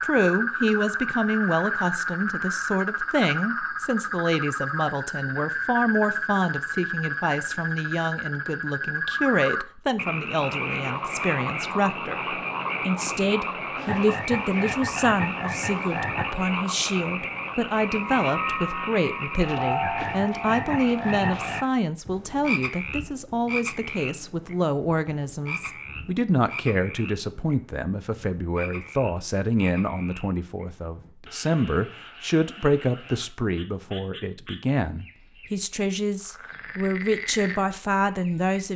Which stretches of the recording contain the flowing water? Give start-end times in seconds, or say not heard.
not heard.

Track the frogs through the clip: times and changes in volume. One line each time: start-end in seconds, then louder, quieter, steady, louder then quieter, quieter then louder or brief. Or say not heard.
0.0-38.6 quieter.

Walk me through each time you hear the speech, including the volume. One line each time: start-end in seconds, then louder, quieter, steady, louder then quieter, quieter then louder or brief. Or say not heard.
0.0-38.7 steady.